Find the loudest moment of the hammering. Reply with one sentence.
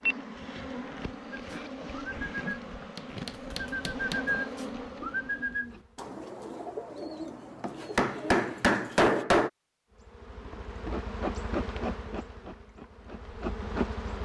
The volume of the hammering peaks at 9 seconds.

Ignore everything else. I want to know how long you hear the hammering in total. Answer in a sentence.
You can hear the hammering for 3 seconds altogether.